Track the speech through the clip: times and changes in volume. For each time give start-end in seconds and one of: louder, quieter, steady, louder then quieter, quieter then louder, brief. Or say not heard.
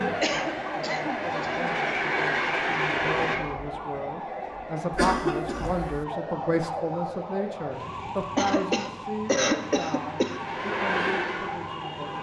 0.0-12.1 louder then quieter.